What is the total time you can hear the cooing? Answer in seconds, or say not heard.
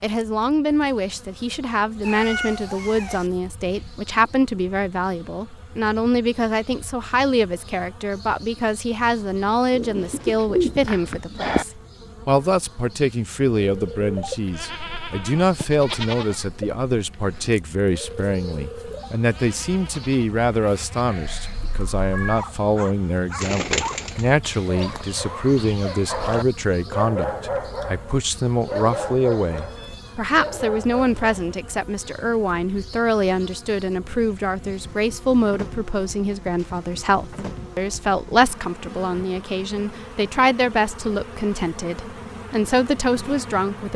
3 s.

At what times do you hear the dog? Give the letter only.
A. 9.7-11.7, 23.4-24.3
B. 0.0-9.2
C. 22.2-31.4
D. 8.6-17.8
C.